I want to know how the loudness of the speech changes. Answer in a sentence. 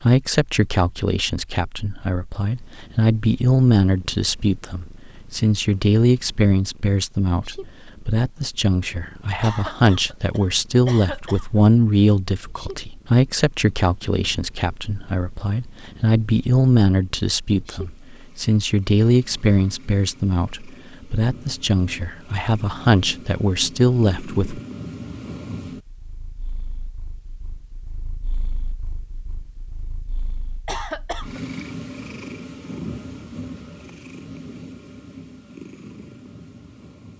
The volume of the speech stays about the same.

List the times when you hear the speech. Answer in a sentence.
You can hear the speech from 0.0 to 24.6 s.